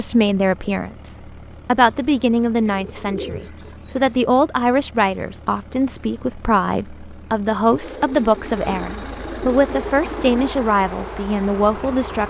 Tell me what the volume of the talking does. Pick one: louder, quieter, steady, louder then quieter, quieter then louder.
steady.